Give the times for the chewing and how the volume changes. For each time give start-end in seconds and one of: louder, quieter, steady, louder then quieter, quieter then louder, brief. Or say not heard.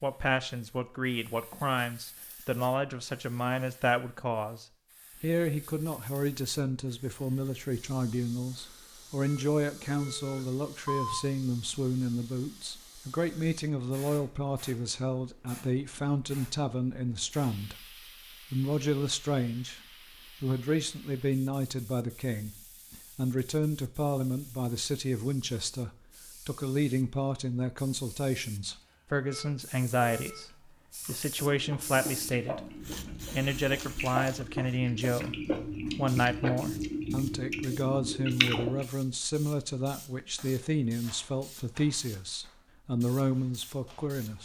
31.1-38.9 louder.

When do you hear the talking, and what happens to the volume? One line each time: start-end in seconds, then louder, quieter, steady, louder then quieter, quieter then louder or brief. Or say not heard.
0.0-17.9 steady
18.5-19.8 brief
20.4-44.3 steady.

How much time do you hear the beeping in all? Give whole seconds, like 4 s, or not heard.
3 s.